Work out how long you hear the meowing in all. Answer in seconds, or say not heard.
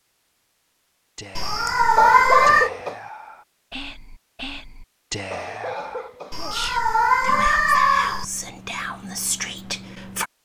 3 s.